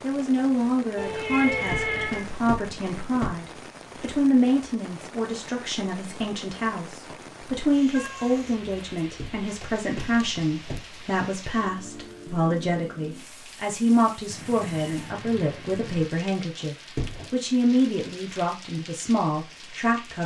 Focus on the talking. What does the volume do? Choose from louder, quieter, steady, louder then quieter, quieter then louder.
steady.